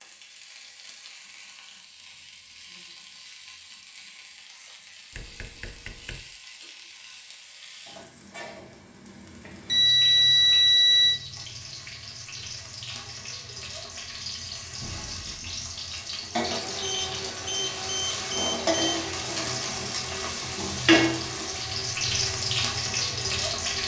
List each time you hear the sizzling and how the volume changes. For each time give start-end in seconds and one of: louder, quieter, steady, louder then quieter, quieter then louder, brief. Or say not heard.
0.0-23.8 louder.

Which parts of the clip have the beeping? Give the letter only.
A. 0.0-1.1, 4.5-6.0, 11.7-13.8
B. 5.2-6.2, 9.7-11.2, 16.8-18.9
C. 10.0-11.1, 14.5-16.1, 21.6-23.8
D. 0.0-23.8
B.